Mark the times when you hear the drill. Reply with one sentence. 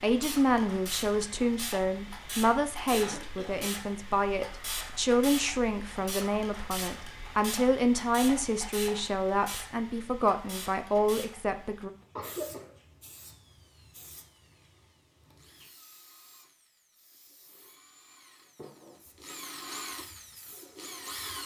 The drill can be heard from 13.2 to 21.4 s.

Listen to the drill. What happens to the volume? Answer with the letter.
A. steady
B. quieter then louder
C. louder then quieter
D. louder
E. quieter
D.